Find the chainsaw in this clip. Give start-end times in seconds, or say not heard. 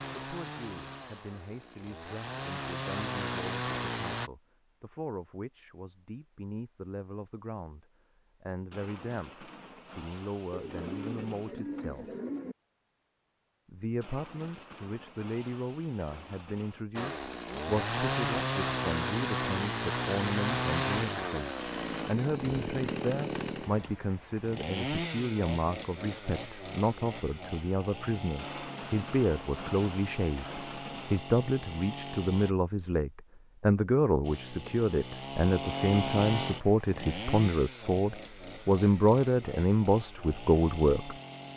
0.0-4.3, 16.9-32.5, 34.2-41.5.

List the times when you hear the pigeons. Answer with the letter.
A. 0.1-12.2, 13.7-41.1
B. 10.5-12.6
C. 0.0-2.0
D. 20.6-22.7
B.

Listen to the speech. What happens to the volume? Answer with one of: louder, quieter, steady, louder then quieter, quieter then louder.
louder.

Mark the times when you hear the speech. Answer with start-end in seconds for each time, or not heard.
0.1-12.2, 13.7-41.1.